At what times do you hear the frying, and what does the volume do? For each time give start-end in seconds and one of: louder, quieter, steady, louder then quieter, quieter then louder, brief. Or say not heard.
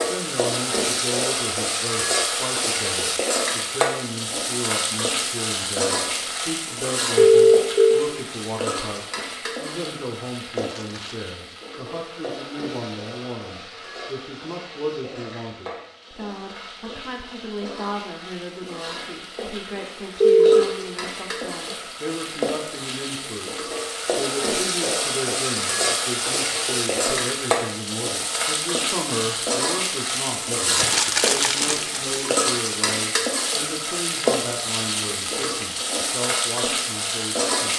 0.0-37.7 quieter then louder.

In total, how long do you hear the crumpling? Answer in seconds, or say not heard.
2 s.